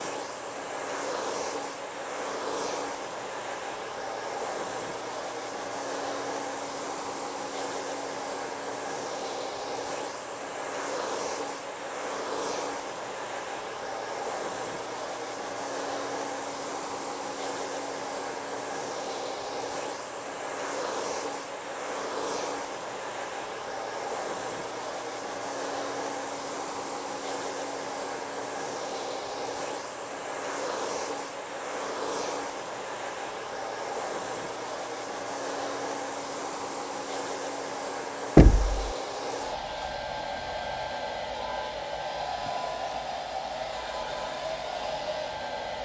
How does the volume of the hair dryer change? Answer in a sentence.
The loudness of the hair dryer stays about the same.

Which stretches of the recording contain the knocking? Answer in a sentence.
The knocking can be heard from 38.4 to 39.0 s.